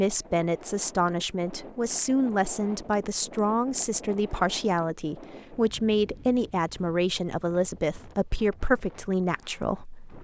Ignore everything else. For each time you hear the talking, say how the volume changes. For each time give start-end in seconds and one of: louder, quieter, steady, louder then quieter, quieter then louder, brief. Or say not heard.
0.0-10.1 steady.